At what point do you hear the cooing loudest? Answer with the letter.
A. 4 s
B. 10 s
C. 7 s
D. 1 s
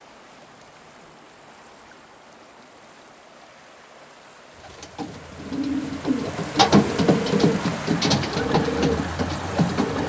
C.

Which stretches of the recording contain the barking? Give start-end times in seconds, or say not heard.
not heard.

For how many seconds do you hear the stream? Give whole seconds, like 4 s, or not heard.
10 s.